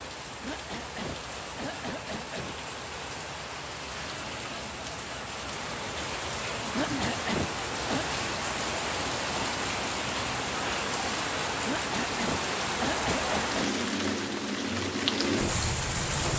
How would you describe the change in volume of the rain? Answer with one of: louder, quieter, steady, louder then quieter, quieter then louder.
louder.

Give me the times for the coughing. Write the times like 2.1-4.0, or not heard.
0.4-2.5, 6.7-8.1, 11.7-13.8.